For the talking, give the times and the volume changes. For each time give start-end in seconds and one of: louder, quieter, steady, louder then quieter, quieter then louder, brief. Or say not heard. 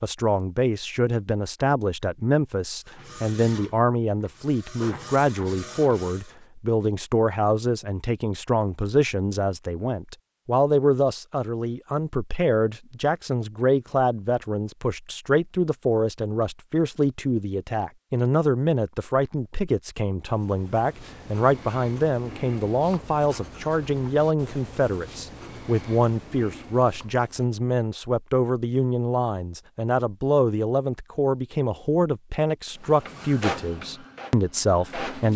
0.0-35.3 steady.